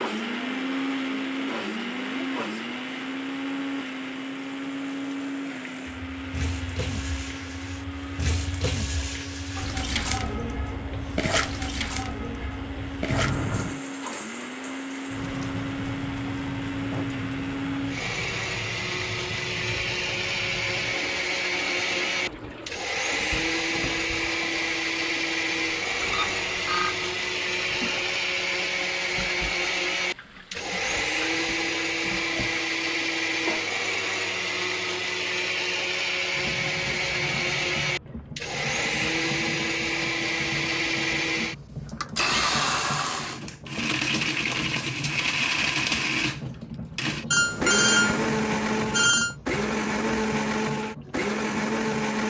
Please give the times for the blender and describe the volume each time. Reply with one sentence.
The blender can be heard from 0.0 to 52.2 s, getting louder.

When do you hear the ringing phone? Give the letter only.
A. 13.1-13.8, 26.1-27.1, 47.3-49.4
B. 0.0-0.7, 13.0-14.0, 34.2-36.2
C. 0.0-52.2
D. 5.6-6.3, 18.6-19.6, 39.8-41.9
A.